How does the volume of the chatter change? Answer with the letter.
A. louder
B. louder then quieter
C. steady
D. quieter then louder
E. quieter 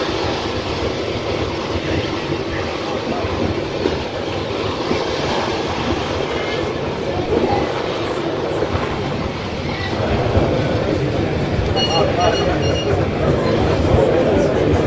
A.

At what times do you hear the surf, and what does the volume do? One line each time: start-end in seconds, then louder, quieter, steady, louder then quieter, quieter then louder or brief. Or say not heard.
0.0-14.8 steady.